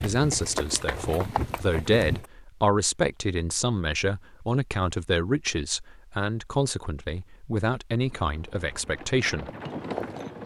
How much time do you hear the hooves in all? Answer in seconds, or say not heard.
5 s.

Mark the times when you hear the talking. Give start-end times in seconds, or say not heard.
0.0-9.5.